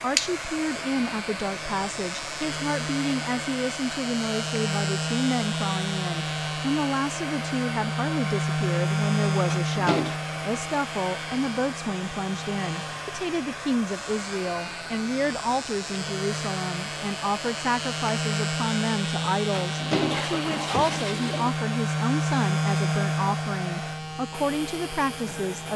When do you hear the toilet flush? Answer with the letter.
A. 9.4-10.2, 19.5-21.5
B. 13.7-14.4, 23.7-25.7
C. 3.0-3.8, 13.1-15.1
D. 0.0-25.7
A.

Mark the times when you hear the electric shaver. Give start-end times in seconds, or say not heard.
0.0-25.7.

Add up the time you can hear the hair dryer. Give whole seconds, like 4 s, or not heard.
26 s.